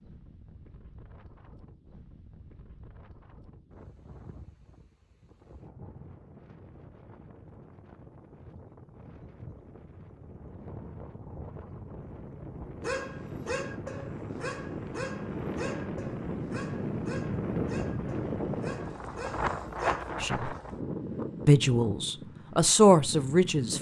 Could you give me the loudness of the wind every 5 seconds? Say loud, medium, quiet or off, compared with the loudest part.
quiet, quiet, medium, loud, medium.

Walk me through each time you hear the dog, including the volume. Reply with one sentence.
You can hear the dog from 12.8 to 20.1 s, getting quieter.